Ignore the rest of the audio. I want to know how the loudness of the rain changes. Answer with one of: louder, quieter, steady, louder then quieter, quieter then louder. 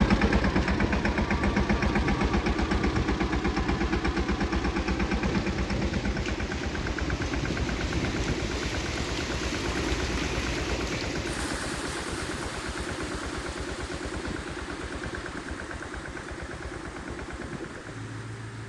louder then quieter.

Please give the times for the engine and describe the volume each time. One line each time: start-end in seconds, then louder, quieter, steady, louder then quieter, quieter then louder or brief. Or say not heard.
0.0-18.6 quieter.